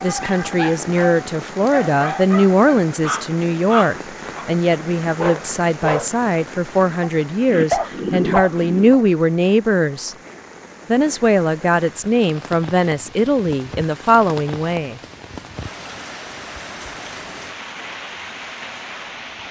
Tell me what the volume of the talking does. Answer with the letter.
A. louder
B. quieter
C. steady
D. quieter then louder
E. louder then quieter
C.